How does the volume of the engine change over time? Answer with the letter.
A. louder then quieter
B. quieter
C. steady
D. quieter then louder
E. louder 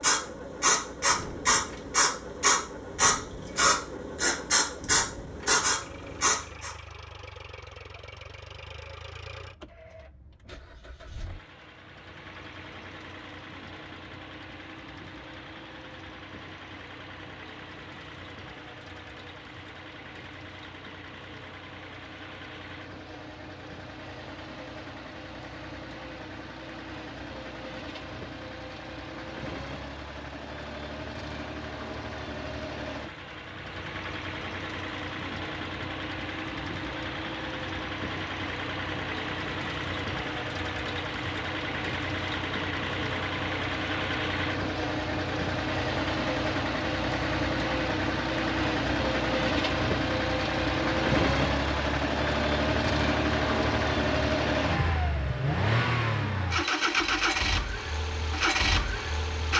E.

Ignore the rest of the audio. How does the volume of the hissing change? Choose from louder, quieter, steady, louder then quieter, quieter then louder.
steady.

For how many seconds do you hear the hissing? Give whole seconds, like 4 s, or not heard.
7 s.